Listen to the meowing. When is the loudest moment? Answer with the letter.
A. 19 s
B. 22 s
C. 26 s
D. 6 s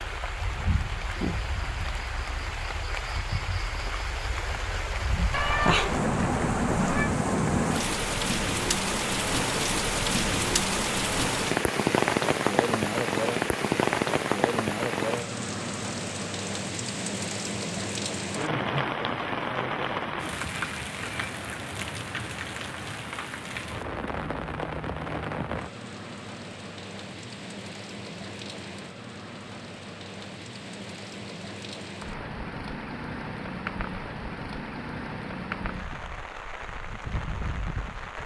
D.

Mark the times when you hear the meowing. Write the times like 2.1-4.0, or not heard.
5.3-7.1.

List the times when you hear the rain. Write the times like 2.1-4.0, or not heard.
0.0-38.2.